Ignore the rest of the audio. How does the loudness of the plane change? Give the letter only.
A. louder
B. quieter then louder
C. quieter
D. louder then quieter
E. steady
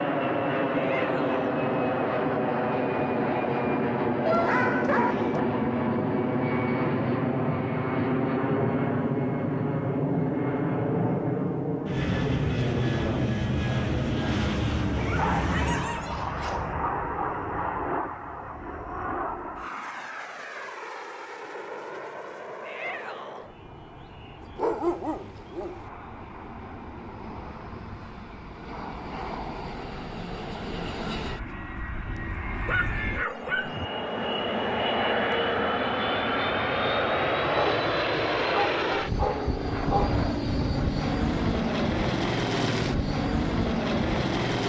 B.